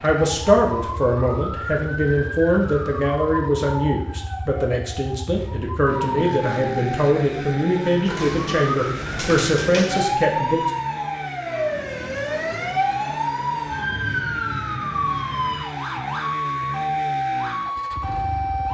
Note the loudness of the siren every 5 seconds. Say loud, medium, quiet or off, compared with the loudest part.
medium, medium, loud, loud.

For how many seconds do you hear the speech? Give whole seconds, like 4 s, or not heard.
11 s.